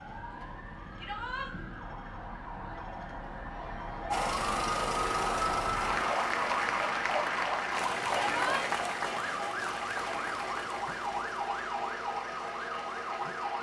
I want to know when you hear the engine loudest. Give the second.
5 s.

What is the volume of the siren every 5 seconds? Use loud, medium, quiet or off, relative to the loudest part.
medium, loud, loud.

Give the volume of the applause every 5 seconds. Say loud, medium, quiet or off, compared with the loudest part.
off, loud, medium.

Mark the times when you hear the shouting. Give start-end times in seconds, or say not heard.
0.9-1.5, 8.1-8.7.